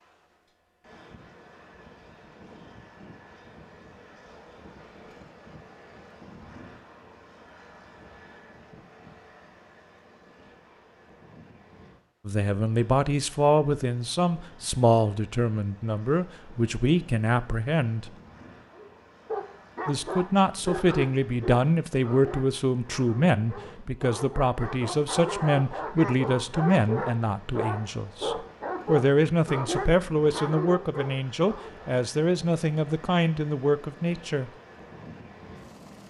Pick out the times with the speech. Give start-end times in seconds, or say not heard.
12.2-18.1, 19.9-34.5.